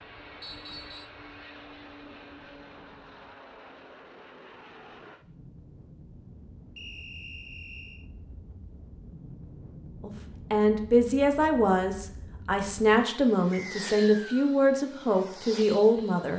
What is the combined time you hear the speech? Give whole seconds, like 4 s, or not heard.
6 s.